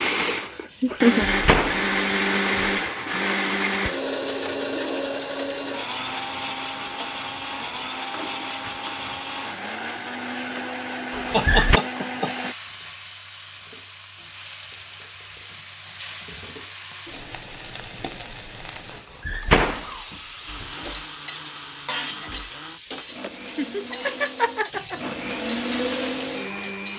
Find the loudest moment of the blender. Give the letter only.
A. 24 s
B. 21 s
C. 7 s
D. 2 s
D.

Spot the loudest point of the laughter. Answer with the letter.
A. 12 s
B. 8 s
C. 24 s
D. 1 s
D.